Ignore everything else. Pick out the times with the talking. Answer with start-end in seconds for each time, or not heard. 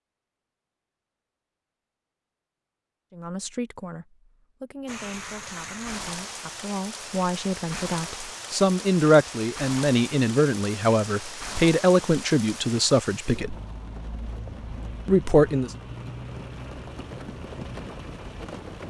3.1-13.6, 15.1-15.7.